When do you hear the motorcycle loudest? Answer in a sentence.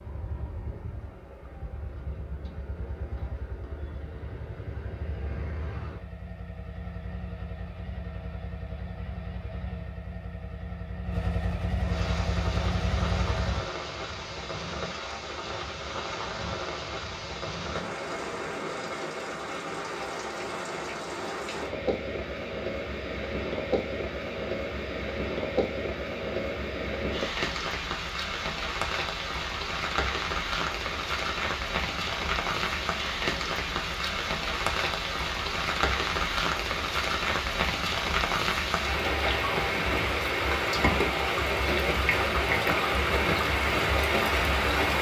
The loudest moment of the motorcycle is at 13 seconds.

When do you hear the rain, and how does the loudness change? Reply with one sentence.
The rain can be heard from 11.8 to 44.9 s, getting louder.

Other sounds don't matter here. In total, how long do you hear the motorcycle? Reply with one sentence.
You can hear the motorcycle for 14 seconds altogether.